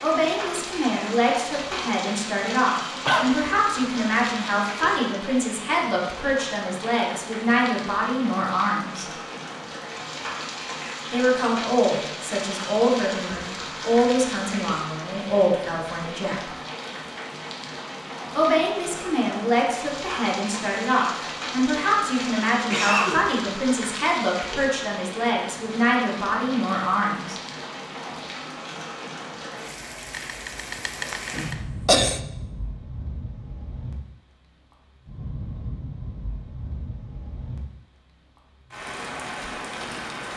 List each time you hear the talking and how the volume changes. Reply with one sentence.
You can hear the talking from 0.0 to 9.1 s, at a steady volume; from 11.1 to 16.4 s, getting quieter then louder; and from 18.4 to 27.4 s, at a steady volume.